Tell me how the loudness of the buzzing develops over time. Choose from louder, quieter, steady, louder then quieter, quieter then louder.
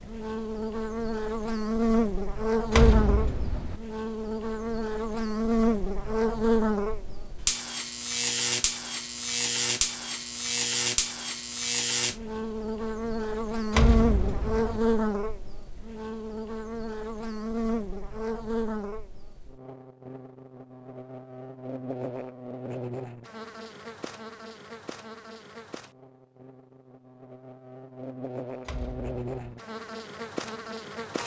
quieter.